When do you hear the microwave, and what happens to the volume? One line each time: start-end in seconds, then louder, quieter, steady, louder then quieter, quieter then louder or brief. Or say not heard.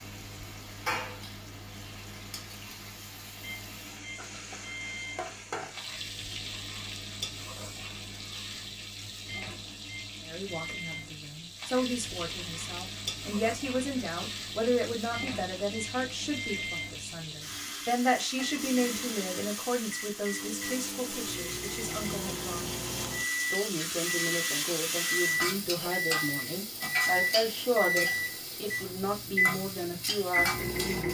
0.0-31.1 louder.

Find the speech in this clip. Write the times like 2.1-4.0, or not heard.
10.2-31.1.